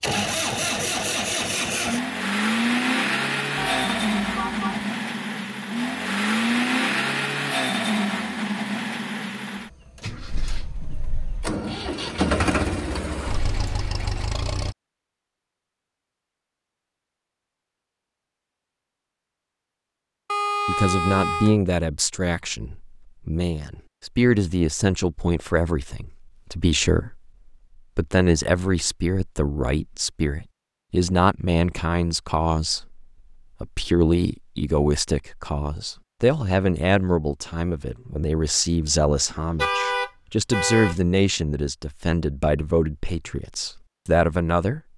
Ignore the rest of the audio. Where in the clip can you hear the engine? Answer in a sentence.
You can hear the engine from 0.0 to 14.8 s.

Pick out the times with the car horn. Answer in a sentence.
The car horn can be heard from 3.5 to 4.8 s, from 20.2 to 21.6 s and from 39.5 to 41.0 s.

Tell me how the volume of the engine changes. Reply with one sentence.
The loudness of the engine goes down, then up.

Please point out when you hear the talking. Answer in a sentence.
The talking can be heard from 20.6 to 27.2 s and from 27.9 to 44.8 s.